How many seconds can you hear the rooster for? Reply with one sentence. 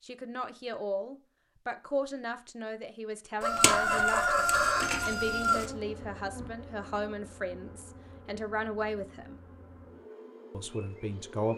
The rooster can be heard for 2 seconds in total.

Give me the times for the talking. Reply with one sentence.
The talking can be heard from 0.0 to 9.3 s and from 10.5 to 11.5 s.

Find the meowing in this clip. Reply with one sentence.
You can't hear the meowing here.